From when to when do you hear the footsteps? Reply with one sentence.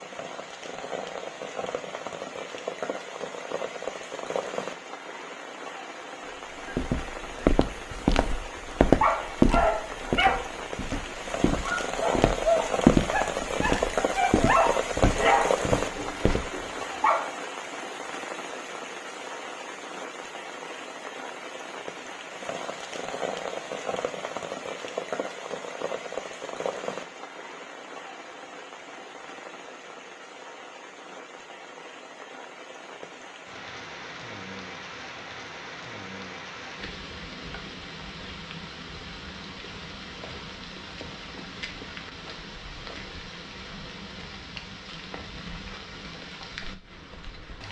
You can hear the footsteps from 6.7 to 16.5 s.